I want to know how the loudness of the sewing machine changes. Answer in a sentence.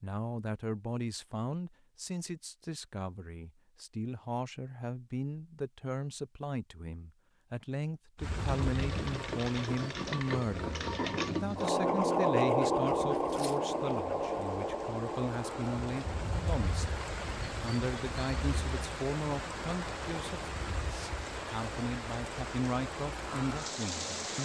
The loudness of the sewing machine goes up, then down.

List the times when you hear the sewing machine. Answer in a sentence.
The sewing machine can be heard from 8.2 to 24.4 s.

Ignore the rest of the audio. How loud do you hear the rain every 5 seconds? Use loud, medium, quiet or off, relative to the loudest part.
off, loud, quiet, loud, loud.